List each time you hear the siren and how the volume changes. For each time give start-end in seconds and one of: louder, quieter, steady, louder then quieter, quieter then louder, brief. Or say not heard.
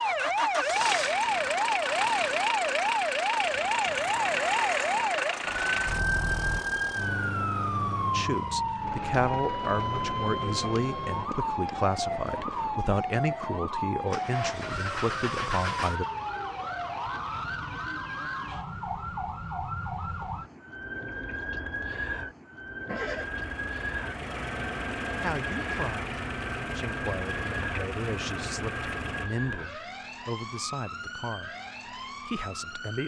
0.0-33.0 quieter.